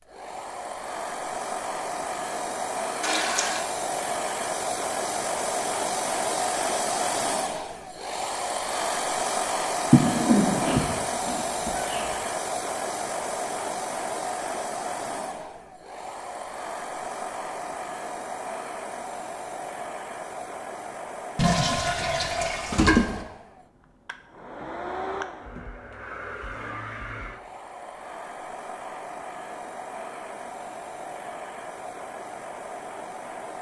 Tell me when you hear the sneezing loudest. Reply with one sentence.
The loudest moment of the sneezing is at 10 seconds.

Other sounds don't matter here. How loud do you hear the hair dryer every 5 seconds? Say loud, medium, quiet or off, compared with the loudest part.
loud, loud, loud, medium, medium, medium, medium.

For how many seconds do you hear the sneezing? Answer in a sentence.
The sneezing can be heard for 2 seconds in total.